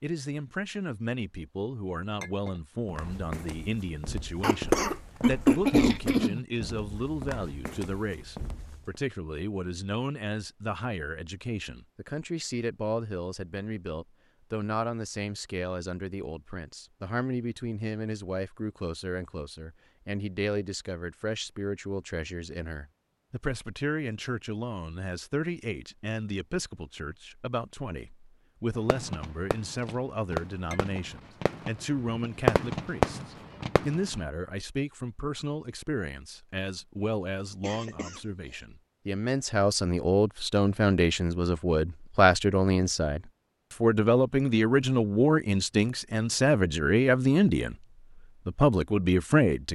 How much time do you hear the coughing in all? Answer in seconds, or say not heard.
3 s.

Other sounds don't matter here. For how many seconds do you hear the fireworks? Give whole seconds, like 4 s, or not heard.
5 s.